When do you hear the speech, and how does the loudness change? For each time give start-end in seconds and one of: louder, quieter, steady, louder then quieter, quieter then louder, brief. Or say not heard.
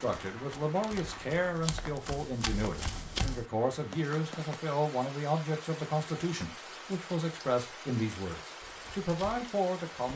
0.0-10.1 steady.